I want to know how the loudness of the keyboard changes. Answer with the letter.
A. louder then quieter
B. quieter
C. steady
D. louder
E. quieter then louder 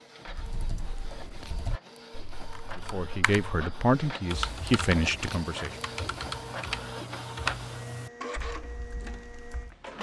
A.